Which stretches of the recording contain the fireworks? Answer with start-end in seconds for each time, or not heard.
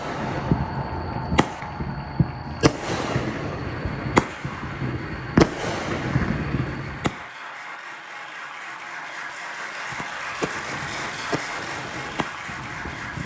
0.0-7.1, 9.9-13.2.